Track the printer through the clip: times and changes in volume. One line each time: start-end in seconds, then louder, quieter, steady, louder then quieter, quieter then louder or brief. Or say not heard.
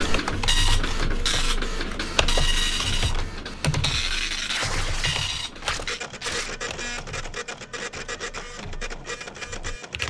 0.0-10.0 quieter.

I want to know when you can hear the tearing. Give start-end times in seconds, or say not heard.
4.5-6.5.